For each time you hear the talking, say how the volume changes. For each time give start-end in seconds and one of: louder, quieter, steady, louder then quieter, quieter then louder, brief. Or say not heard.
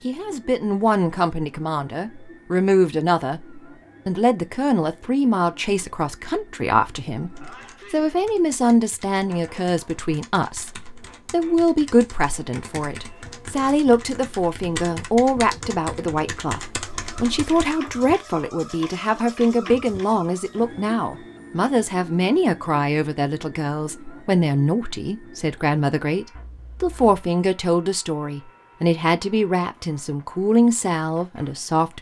0.0-31.9 steady.